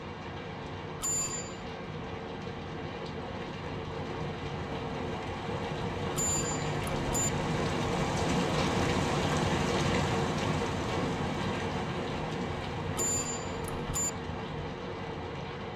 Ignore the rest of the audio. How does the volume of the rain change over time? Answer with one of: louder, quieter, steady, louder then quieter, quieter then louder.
louder then quieter.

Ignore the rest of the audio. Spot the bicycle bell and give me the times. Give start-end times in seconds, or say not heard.
1.0-1.6, 6.1-7.3, 12.9-14.1.